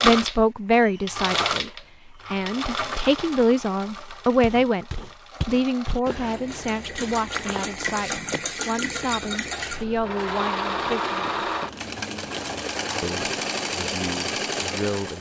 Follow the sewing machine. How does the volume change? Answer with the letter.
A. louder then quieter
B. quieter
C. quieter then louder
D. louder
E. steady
C.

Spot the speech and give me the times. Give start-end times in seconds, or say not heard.
0.0-1.7, 2.3-11.5, 13.0-15.1.